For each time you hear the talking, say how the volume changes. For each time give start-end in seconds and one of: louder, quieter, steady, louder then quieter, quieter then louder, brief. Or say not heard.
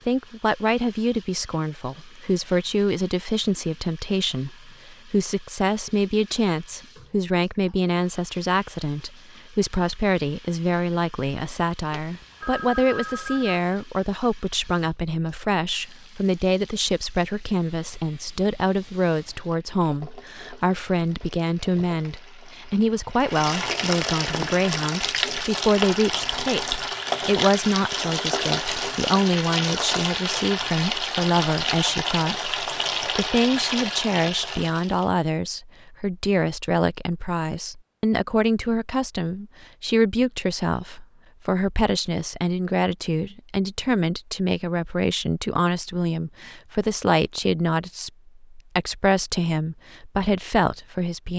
0.1-51.3 steady.